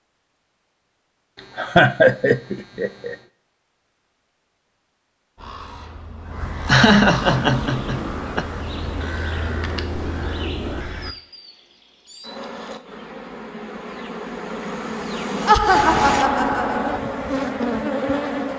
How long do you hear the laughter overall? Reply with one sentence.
The laughter can be heard for 5 seconds in total.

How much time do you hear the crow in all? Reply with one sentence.
You can hear the crow for 6 seconds altogether.